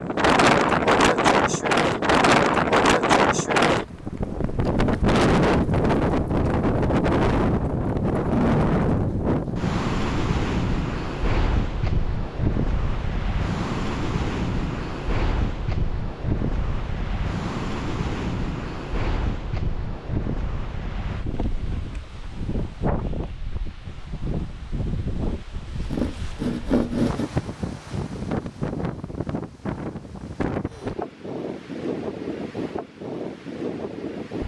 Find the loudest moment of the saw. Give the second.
27 s.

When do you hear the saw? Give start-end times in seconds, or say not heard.
25.6-27.3.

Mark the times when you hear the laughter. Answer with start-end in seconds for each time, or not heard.
not heard.